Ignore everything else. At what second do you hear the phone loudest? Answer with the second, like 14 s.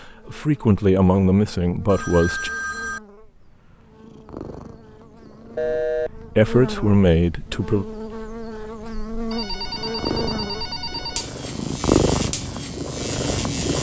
6 s.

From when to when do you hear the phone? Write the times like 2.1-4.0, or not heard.
1.9-3.0, 5.5-6.1, 9.3-11.3.